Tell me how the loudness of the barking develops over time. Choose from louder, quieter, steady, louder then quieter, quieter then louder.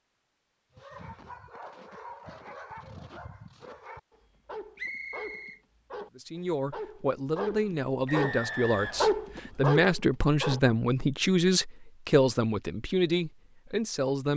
louder.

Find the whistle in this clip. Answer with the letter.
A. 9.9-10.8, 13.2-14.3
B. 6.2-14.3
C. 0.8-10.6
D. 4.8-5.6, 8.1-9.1
D.